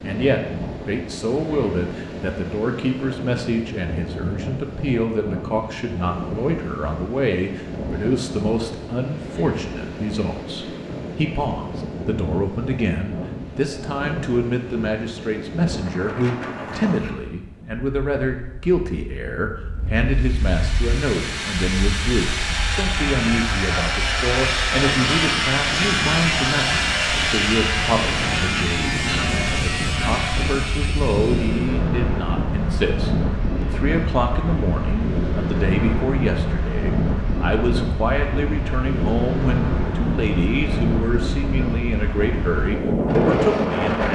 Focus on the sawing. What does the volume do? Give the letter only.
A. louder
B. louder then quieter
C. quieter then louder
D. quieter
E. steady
B.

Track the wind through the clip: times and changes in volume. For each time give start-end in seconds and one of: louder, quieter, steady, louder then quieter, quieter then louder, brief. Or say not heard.
0.0-44.1 louder.